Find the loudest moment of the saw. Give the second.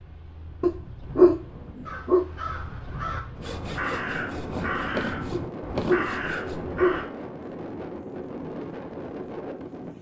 5 s.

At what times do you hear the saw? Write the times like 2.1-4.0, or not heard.
3.4-6.5.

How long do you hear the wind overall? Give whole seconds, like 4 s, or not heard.
10 s.